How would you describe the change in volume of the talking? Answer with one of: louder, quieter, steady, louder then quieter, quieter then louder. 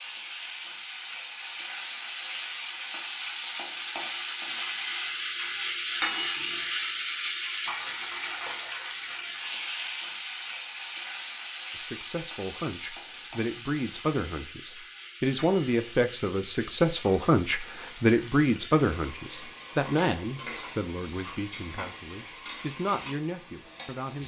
louder then quieter.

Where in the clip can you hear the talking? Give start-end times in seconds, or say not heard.
11.8-24.2.